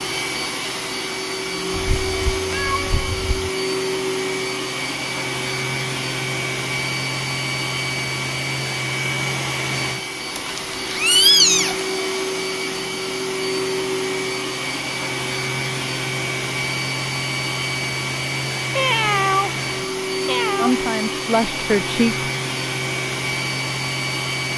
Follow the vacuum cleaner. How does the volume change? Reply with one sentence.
The loudness of the vacuum cleaner stays about the same.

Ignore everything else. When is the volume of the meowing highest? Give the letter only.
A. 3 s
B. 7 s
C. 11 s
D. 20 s
C.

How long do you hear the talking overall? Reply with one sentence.
You can hear the talking for 2 seconds altogether.